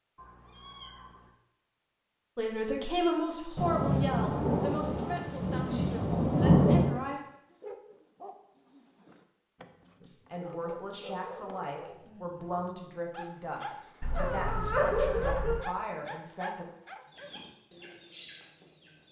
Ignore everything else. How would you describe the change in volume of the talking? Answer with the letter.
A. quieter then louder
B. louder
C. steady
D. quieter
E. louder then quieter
D.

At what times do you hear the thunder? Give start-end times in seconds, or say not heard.
3.5-7.0.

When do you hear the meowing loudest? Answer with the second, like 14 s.
15 s.